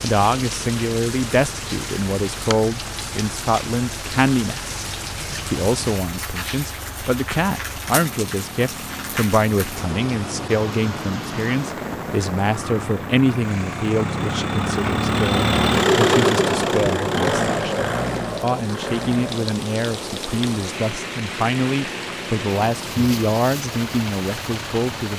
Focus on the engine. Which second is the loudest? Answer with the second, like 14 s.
16 s.